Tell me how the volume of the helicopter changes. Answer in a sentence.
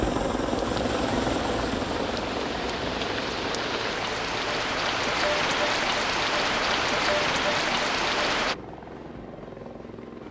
The volume of the helicopter goes down.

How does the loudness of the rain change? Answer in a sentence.
The volume of the rain goes up.